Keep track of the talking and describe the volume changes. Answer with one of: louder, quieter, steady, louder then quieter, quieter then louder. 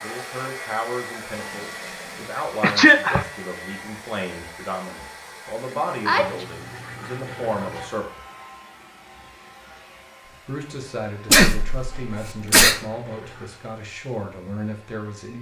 steady.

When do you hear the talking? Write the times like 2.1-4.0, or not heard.
0.0-8.2, 10.2-15.3.